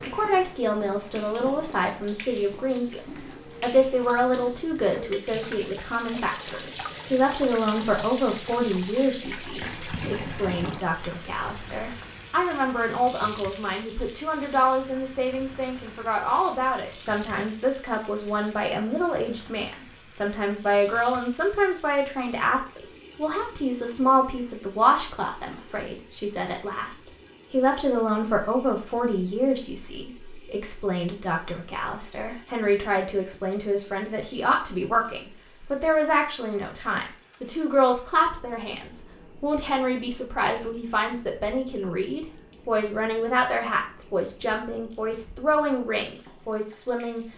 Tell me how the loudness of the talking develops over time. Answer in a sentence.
The volume of the talking stays about the same.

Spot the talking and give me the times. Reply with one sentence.
The talking can be heard from 0.0 to 47.2 s.